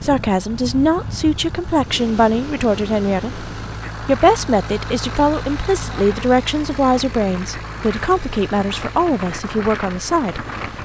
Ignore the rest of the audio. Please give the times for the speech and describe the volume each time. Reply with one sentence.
The speech can be heard from 0.0 to 10.8 s, at a steady volume.